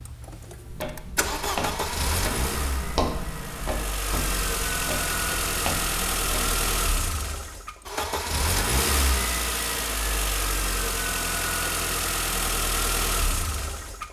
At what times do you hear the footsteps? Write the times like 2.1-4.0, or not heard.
0.7-6.6.